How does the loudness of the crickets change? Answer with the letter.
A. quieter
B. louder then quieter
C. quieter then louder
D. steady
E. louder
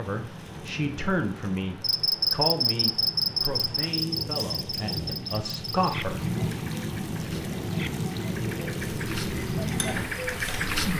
C.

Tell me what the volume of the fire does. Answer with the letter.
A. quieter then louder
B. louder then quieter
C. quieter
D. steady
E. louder
E.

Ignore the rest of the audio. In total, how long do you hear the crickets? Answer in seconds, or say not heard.
9 s.